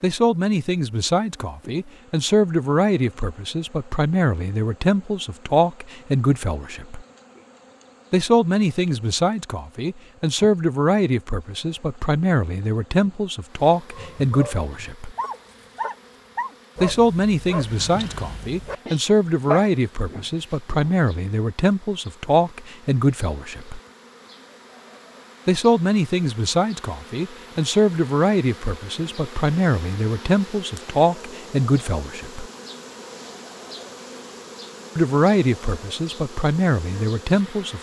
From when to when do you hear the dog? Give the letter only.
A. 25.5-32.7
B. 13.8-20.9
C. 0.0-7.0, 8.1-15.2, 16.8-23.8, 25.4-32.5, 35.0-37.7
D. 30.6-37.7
B.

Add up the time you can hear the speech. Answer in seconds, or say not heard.
31 s.